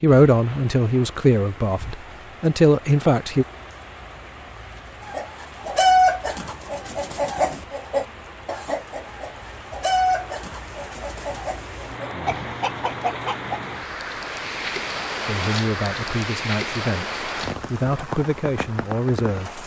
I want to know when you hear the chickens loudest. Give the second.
6 s.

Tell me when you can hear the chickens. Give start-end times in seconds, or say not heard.
5.0-13.8.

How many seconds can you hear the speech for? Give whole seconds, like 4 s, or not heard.
8 s.